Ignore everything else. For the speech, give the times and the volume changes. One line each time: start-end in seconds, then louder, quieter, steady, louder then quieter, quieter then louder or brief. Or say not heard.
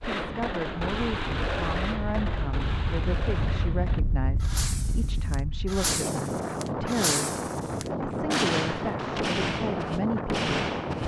0.0-11.0 steady.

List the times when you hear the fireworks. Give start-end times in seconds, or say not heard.
0.0-11.0.